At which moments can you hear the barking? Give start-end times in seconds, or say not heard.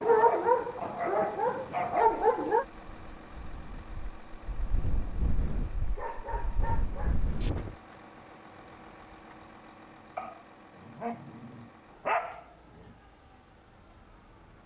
0.0-2.6, 6.0-7.5, 10.2-12.9.